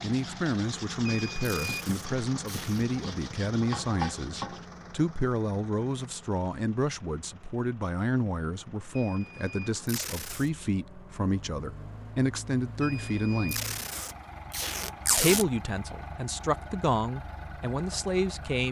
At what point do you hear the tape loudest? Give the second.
15 s.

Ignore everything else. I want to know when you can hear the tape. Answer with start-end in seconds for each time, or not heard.
1.4-2.9, 9.8-10.5, 13.5-15.4.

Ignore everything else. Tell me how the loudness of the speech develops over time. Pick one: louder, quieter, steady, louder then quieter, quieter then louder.
steady.